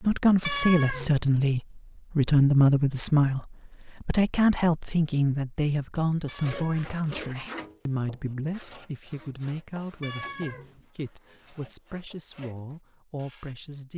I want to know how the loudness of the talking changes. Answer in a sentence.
The volume of the talking goes down.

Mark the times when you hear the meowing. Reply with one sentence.
You can hear the meowing from 0.4 to 1.2 s, from 6.2 to 7.5 s and from 10.0 to 10.8 s.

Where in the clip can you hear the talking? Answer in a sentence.
The talking can be heard from 0.0 to 13.9 s.